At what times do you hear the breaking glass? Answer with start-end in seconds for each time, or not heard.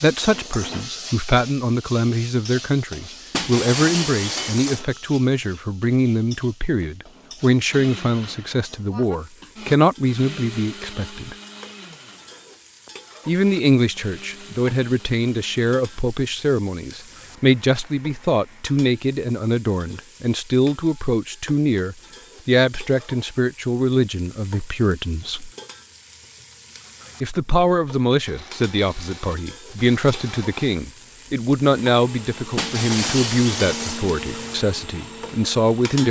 3.3-4.8, 32.5-34.0.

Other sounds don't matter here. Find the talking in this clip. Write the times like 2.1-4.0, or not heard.
0.0-11.3, 13.2-25.5, 27.2-36.0.